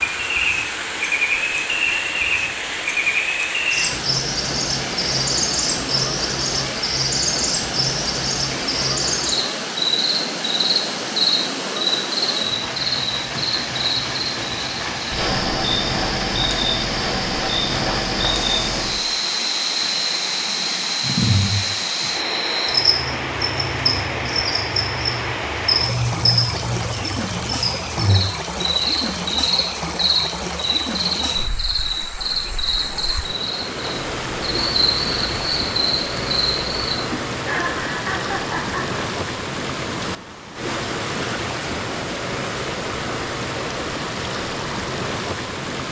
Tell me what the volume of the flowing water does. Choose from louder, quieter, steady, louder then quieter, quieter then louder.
steady.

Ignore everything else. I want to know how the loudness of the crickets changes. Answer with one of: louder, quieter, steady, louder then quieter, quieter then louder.
steady.